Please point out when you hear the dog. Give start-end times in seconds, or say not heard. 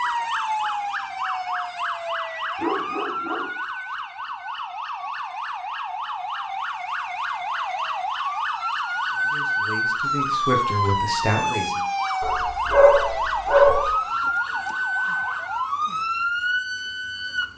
2.5-3.5, 12.2-13.9.